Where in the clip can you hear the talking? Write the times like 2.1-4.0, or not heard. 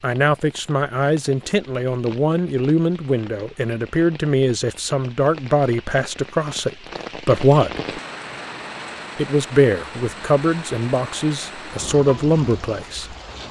0.0-8.0, 9.2-13.2.